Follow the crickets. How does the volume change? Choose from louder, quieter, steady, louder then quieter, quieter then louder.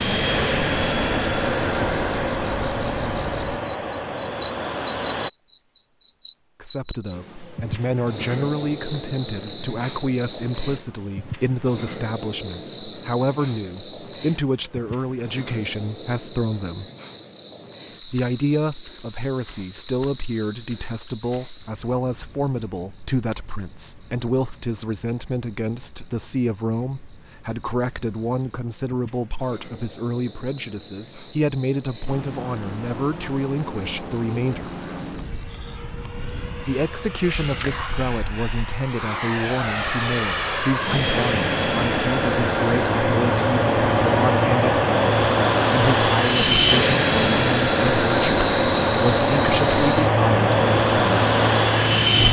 quieter then louder.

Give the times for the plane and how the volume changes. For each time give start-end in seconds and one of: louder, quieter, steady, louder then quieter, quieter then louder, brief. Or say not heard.
0.0-5.3 quieter
32.0-52.2 louder.